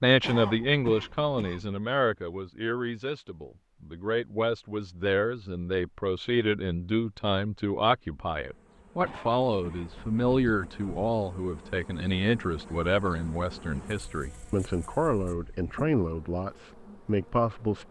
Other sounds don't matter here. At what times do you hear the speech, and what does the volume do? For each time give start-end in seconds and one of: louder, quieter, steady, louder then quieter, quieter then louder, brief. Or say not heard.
0.0-17.8 steady.